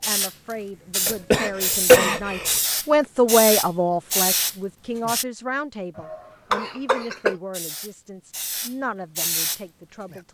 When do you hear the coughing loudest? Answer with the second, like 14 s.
2 s.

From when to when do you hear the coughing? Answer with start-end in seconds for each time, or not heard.
1.1-2.6, 6.0-7.3.